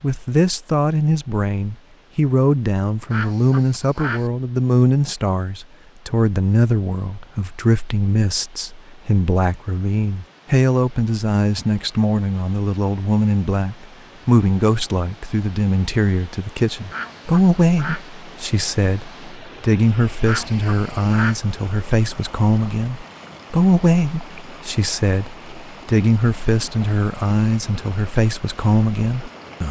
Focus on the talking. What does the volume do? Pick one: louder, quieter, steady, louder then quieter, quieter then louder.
steady.